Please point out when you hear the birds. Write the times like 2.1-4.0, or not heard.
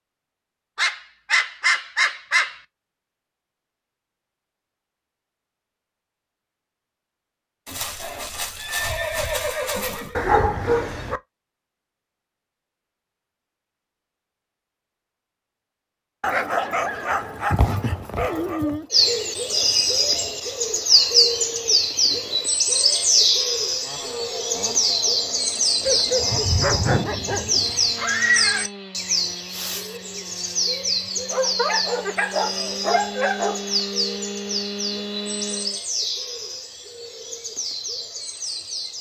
18.9-38.9.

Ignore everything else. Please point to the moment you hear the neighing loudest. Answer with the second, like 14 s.
28 s.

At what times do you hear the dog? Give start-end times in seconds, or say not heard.
0.8-2.5, 10.2-11.2, 16.2-18.9, 25.8-27.9, 31.3-33.8.